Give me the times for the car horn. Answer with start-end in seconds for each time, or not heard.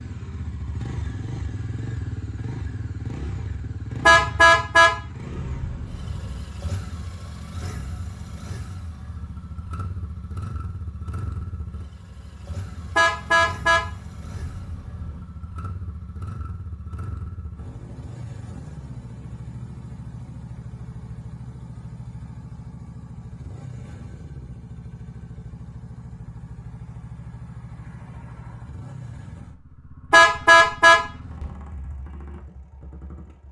4.0-6.4, 12.9-15.2, 30.1-31.5.